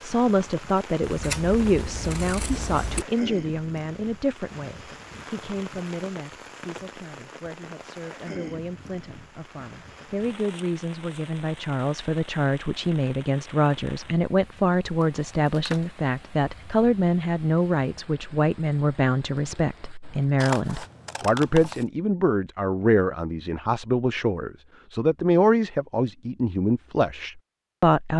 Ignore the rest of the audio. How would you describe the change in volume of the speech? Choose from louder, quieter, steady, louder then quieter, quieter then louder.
quieter then louder.